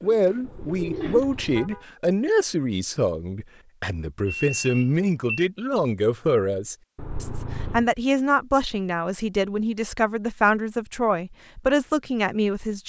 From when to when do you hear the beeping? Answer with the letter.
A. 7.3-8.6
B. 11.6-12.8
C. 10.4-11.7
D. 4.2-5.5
D.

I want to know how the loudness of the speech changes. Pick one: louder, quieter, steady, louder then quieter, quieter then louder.
steady.